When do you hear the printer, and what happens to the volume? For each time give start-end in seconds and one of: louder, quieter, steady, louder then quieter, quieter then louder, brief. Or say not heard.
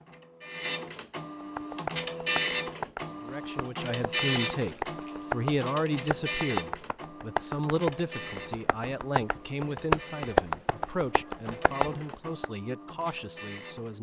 0.0-13.9 quieter.